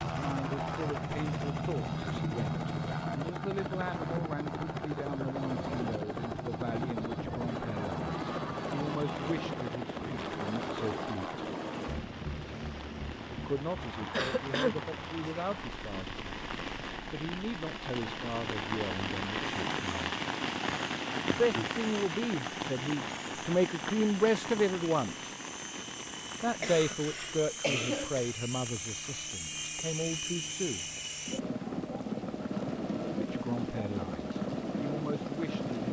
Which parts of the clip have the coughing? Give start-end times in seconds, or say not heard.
14.1-14.8, 26.6-28.3.